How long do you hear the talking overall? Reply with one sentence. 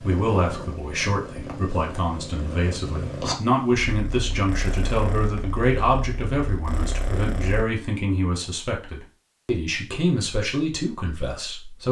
The talking can be heard for 12 seconds in total.